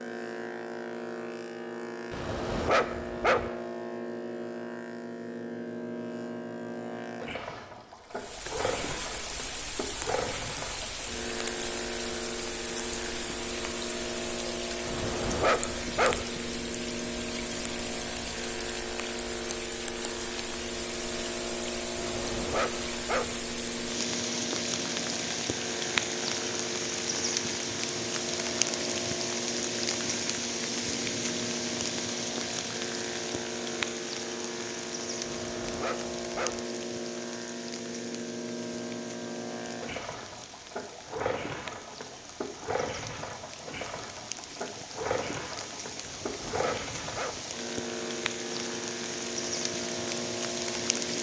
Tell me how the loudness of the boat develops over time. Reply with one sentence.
The loudness of the boat stays about the same.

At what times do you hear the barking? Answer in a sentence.
The barking can be heard from 2.1 to 3.5 s, from 14.8 to 16.2 s, from 21.9 to 23.4 s, from 35.5 to 36.6 s and from 46.0 to 47.5 s.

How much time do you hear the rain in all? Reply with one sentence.
The rain can be heard for 43 seconds in total.